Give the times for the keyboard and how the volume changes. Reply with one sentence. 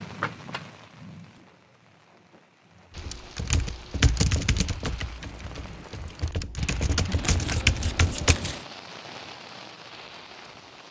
You can hear the keyboard from 3.0 to 8.4 s, getting quieter then louder.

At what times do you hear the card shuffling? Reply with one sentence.
You can hear the card shuffling from 0.2 to 0.9 s and from 7.0 to 8.7 s.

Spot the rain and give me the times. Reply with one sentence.
You can hear the rain from 0.0 to 10.8 s.